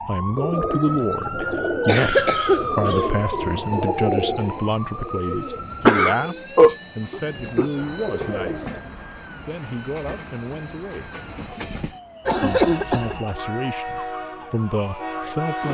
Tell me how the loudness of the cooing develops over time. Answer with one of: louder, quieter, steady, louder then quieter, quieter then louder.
quieter.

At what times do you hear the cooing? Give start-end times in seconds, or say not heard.
0.3-8.8.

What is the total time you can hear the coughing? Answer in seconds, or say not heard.
4 s.